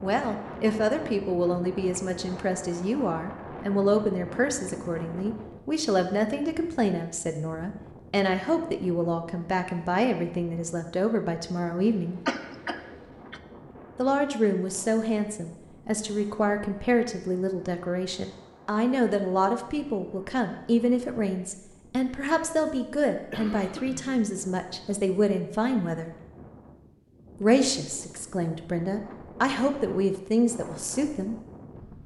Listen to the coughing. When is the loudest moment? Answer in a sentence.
The loudest moment of the coughing is at 12 seconds.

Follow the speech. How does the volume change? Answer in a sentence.
The volume of the speech stays about the same.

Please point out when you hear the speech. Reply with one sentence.
The speech can be heard from 0.0 to 12.2 s, from 13.9 to 26.1 s and from 27.4 to 31.4 s.